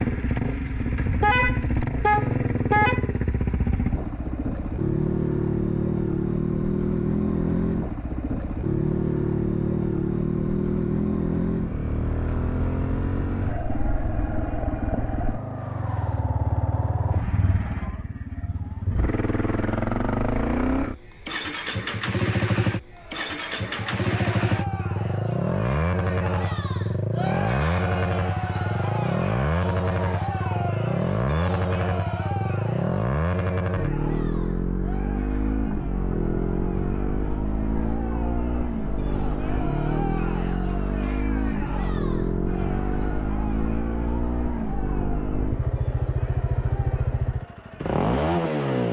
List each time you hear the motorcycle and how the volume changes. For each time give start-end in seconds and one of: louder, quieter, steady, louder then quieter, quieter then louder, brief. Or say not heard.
0.0-48.8 steady.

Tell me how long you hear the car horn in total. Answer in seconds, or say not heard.
2 s.